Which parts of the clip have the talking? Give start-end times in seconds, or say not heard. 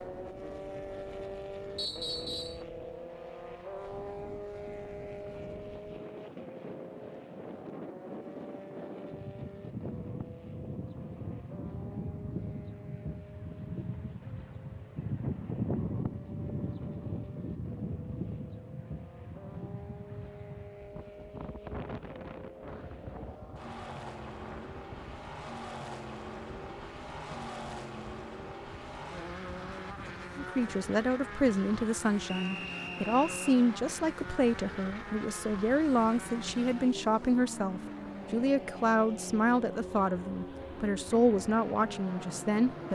30.4-42.9.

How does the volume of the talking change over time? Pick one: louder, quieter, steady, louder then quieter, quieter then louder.
steady.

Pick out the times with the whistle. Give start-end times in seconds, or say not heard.
1.8-2.6, 32.2-33.5.